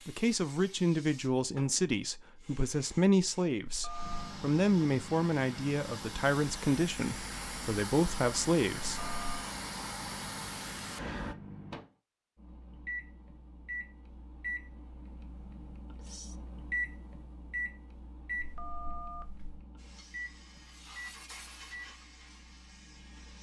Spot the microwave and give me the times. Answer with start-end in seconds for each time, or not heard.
4.0-23.3.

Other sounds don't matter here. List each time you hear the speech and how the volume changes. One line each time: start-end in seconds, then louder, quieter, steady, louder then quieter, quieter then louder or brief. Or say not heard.
0.1-9.0 steady.